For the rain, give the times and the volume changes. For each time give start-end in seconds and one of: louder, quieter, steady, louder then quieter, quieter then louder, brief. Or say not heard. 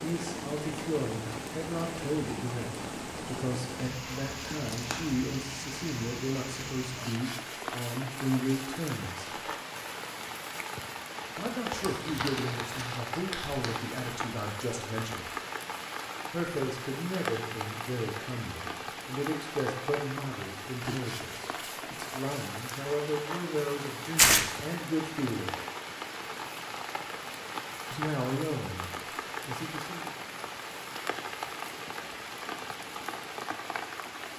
0.0-34.3 steady.